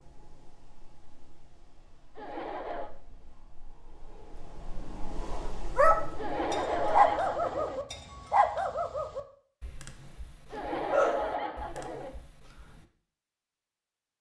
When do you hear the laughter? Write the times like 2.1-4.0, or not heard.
2.1-2.9, 6.2-7.8, 10.5-12.2.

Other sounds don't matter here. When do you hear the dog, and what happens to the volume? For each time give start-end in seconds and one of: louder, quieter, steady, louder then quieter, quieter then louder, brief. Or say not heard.
5.3-12.8 quieter.